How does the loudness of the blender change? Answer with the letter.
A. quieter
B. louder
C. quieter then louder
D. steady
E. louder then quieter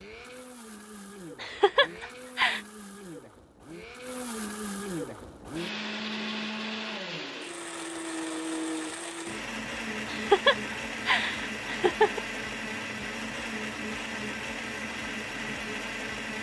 B.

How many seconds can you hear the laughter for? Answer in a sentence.
The laughter can be heard for 3 seconds in total.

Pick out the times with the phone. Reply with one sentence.
You can't hear the phone here.